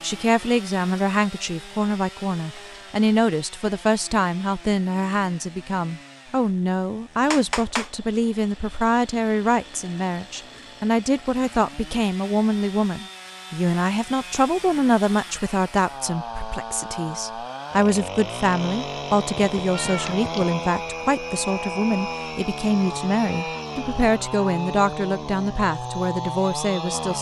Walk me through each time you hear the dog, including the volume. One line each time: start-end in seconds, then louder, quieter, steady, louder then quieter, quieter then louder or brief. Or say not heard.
not heard.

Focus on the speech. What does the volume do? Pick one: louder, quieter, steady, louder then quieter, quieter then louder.
steady.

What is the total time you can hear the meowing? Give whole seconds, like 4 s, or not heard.
2 s.